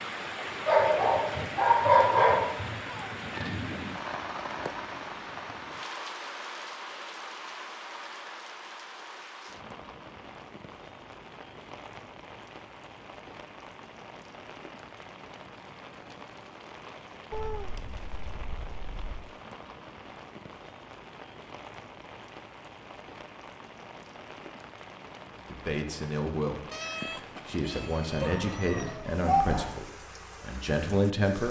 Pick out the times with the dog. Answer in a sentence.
You can hear the dog from 0.7 to 2.8 s and from 28.2 to 29.7 s.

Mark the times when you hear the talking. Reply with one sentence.
You can hear the talking from 25.4 to 26.6 s and from 27.4 to 31.4 s.